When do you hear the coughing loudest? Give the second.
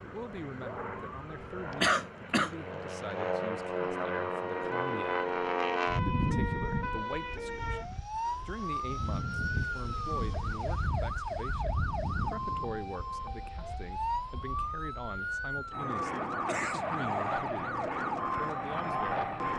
2 s.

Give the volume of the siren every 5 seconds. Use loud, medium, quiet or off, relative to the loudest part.
medium, loud, loud, loud.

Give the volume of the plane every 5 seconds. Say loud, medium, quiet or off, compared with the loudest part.
loud, loud, medium, loud.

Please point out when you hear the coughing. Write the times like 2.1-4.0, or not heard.
1.8-2.5, 16.4-17.4.